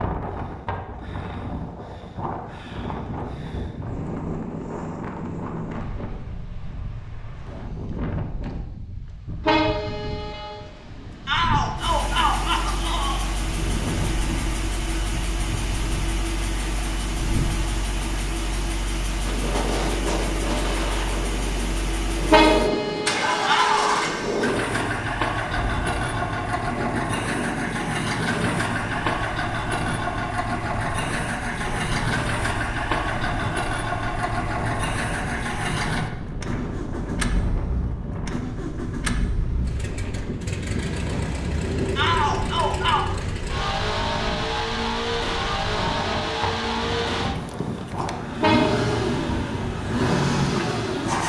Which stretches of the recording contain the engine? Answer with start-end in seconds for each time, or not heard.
11.8-51.2.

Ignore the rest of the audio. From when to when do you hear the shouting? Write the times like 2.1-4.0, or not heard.
11.2-13.2, 23.4-23.9, 42.0-43.0.